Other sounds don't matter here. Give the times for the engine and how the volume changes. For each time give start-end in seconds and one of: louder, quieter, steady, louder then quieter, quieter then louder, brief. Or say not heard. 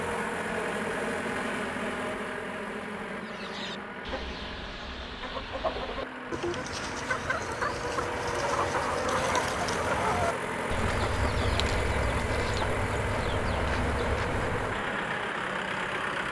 0.0-16.2 quieter then louder.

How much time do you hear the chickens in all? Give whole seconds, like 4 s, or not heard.
12 s.